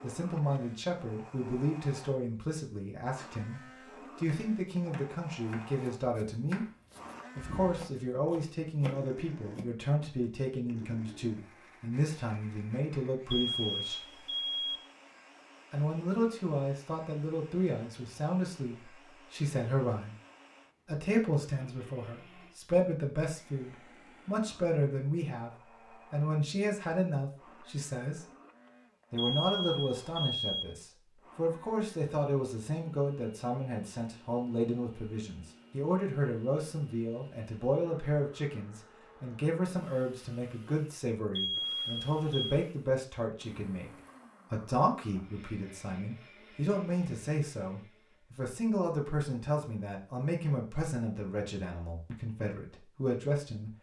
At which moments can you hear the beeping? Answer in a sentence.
The beeping can be heard from 13.3 to 14.8 s, from 29.1 to 30.6 s and from 41.4 to 42.5 s.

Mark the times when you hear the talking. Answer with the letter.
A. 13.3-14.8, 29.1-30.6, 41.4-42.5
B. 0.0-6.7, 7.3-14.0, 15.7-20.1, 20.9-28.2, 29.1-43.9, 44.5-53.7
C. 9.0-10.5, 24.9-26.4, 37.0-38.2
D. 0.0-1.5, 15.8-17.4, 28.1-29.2
B.